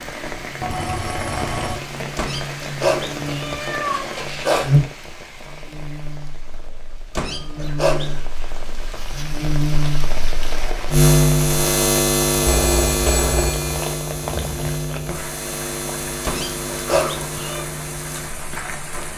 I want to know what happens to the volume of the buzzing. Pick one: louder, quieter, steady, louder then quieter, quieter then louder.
louder then quieter.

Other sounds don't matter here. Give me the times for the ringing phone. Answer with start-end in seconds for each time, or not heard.
0.6-1.8, 12.4-13.8.